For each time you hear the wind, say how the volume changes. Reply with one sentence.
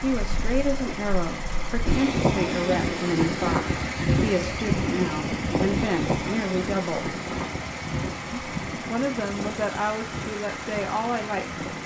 You can hear the wind from 0.2 to 11.8 s, getting quieter.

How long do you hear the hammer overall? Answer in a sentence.
You can't hear the hammer here.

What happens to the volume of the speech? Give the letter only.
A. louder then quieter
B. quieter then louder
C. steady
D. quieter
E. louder
C.